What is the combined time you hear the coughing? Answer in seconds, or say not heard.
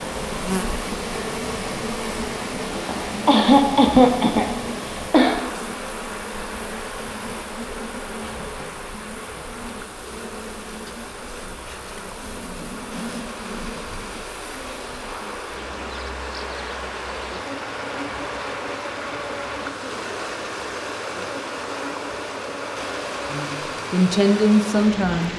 3 s.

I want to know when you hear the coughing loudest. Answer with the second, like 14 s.
4 s.